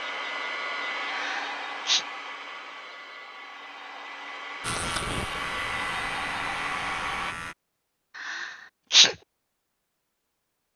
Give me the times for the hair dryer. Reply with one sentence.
The hair dryer can be heard from 0.0 to 7.3 s.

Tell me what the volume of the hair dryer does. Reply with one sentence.
The loudness of the hair dryer goes down, then up.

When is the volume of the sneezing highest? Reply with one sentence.
The volume of the sneezing peaks at 9 seconds.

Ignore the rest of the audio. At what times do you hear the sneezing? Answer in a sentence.
The sneezing can be heard from 1.1 to 2.0 s and from 8.2 to 9.2 s.